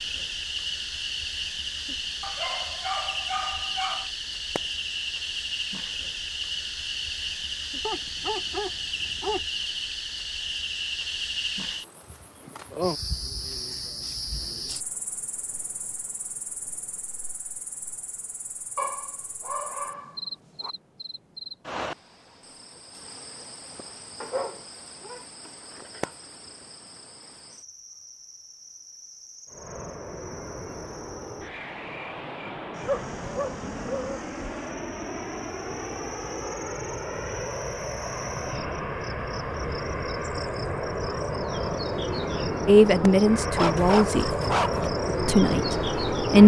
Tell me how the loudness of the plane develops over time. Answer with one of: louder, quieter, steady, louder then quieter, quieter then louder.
louder.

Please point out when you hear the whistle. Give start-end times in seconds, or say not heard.
not heard.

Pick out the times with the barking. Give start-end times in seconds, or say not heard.
2.2-4.0, 7.8-9.4, 18.8-20.7, 24.2-25.2, 32.8-34.2, 43.5-44.9.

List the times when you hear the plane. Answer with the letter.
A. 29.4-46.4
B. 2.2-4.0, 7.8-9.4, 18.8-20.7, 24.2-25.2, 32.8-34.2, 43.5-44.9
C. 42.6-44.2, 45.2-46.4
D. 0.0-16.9
A.